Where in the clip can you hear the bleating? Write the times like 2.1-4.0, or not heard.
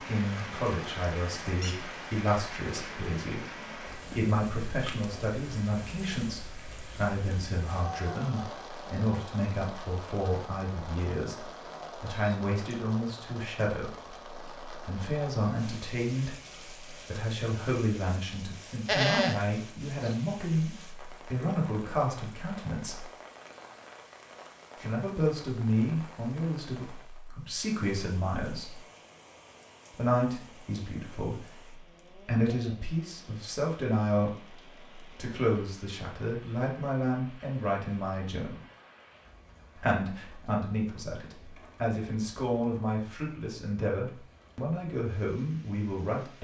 18.9-20.1.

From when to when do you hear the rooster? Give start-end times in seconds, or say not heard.
not heard.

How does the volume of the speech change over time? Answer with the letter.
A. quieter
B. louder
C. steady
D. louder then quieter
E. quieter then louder
C.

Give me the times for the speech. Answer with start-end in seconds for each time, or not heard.
0.0-23.1, 24.8-28.8, 29.9-38.6, 39.8-46.3.